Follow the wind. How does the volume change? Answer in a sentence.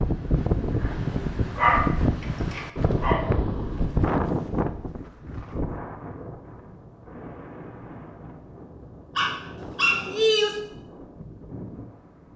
The volume of the wind goes down.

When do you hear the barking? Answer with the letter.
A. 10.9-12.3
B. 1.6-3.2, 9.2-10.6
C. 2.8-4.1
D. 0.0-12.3
B.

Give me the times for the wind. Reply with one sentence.
The wind can be heard from 0.0 to 12.3 s.